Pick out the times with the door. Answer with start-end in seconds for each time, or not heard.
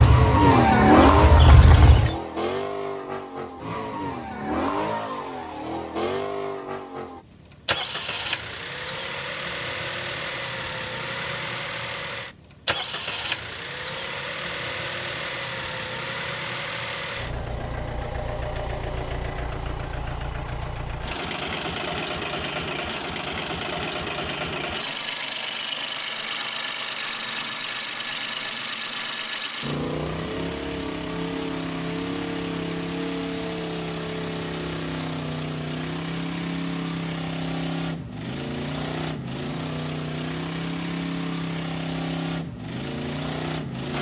not heard.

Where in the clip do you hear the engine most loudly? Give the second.
1 s.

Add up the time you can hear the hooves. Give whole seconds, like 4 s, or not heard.
2 s.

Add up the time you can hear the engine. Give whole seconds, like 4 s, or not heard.
44 s.